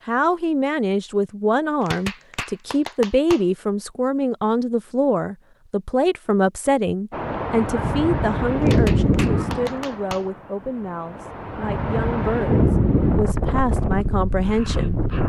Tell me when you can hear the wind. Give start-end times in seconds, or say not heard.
7.1-15.2.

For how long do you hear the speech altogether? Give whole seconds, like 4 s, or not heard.
15 s.